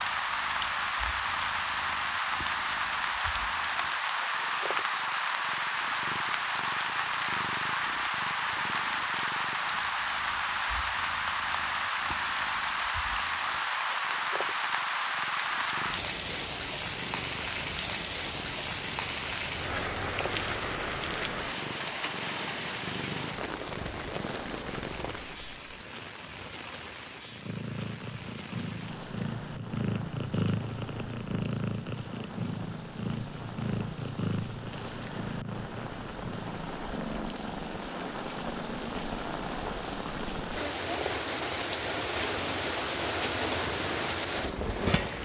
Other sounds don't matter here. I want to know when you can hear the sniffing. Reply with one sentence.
The sniffing can't be heard in this clip.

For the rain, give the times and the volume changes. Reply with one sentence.
The rain can be heard from 0.0 to 45.1 s, getting quieter then louder.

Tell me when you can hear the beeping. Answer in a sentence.
You can hear the beeping from 24.4 to 25.9 s.